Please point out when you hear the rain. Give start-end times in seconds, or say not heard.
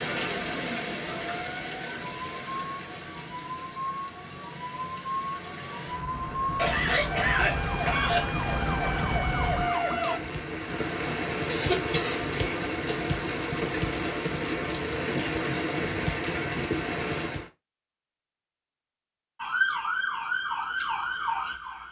0.0-17.5.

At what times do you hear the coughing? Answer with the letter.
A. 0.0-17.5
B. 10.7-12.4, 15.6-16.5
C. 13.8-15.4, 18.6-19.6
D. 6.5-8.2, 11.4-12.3
D.